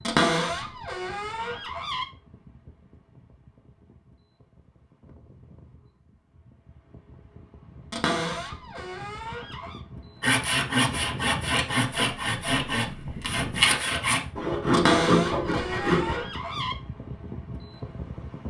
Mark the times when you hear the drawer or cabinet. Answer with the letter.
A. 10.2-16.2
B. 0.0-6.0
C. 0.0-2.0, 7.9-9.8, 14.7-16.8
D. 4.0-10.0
C.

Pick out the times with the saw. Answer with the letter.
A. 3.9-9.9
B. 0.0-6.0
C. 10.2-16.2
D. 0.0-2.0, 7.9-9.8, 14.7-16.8
C.